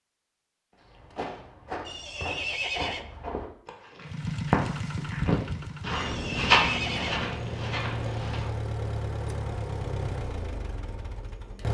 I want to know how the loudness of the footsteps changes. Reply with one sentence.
The volume of the footsteps goes up, then down.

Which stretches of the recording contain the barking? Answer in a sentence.
You can't hear the barking here.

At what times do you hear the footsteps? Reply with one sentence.
You can hear the footsteps from 0.8 to 8.6 s.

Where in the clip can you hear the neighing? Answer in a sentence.
You can hear the neighing from 1.9 to 3.1 s and from 6.0 to 7.3 s.